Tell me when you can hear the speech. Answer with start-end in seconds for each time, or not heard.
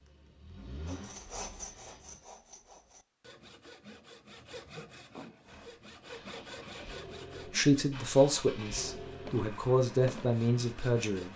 7.5-11.3.